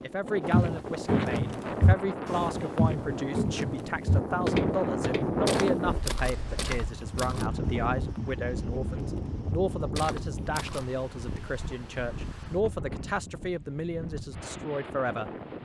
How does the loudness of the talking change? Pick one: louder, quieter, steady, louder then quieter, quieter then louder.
steady.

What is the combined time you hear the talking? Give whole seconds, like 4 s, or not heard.
15 s.